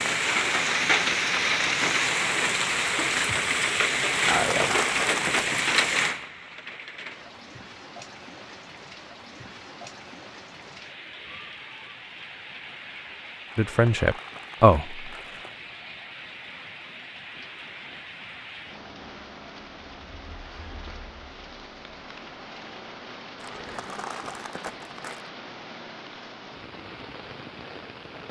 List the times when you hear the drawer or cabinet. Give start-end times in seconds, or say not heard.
not heard.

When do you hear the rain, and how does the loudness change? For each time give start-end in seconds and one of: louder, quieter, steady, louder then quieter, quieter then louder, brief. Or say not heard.
0.0-28.2 quieter.